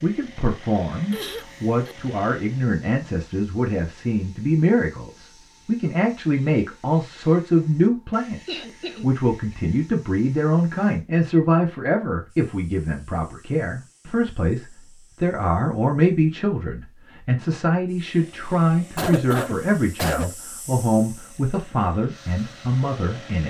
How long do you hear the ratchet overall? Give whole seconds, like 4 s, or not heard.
not heard.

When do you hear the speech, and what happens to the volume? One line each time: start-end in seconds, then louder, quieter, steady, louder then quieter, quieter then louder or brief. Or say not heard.
0.0-23.4 steady.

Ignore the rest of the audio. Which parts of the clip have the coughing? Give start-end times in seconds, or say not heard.
1.1-1.9, 8.4-9.1, 18.9-20.4.